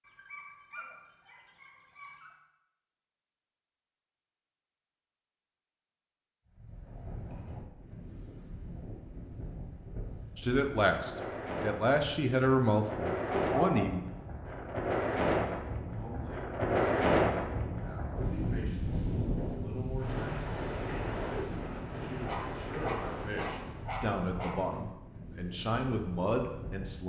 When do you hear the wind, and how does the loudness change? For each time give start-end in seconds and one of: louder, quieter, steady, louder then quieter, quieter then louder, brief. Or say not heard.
6.5-27.0 louder then quieter.